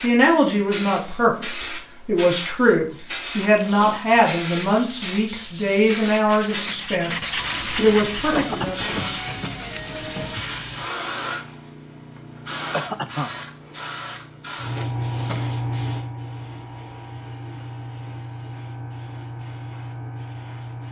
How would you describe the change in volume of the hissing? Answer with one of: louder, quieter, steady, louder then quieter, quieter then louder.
quieter.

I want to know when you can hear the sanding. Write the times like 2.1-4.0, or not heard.
4.0-10.4.